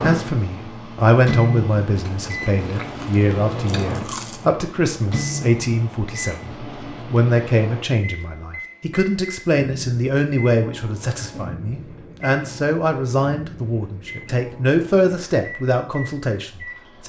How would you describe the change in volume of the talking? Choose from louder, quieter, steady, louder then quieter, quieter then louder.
steady.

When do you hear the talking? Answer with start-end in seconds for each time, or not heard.
0.0-17.0.